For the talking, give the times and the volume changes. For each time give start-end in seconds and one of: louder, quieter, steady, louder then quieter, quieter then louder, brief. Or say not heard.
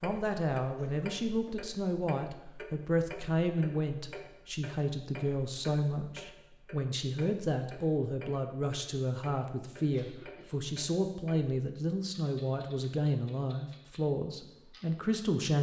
0.0-15.5 steady.